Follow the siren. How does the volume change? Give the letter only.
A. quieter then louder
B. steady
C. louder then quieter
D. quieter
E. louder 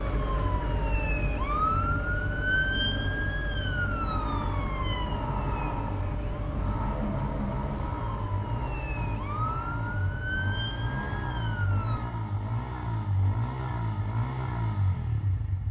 D.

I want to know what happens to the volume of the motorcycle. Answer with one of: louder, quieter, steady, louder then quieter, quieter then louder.
louder.